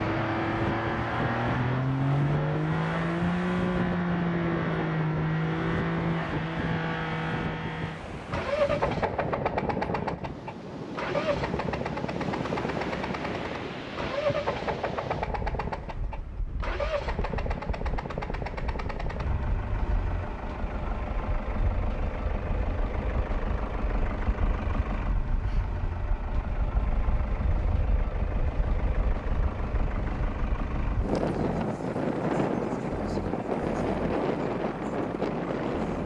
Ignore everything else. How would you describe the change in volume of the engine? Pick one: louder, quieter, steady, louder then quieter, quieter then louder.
quieter.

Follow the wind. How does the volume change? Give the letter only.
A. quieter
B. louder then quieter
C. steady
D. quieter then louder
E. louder
D.